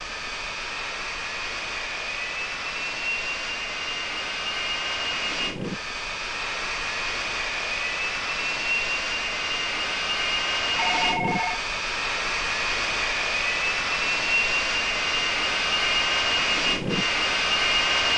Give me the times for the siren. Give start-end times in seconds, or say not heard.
not heard.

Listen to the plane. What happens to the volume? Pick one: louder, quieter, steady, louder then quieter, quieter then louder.
louder.